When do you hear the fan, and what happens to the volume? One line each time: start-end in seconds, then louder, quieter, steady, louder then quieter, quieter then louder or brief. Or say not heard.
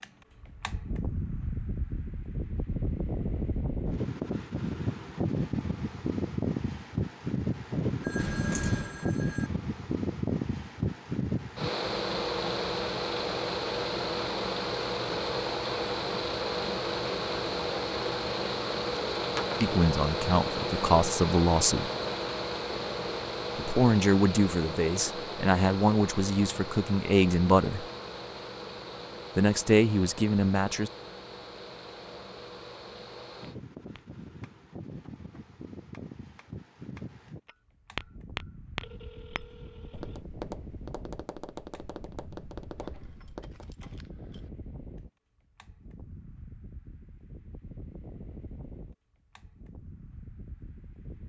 0.0-51.2 quieter.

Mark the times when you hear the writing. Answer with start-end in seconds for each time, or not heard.
not heard.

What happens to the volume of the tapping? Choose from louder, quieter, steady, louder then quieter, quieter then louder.
louder then quieter.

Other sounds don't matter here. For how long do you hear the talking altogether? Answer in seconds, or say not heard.
8 s.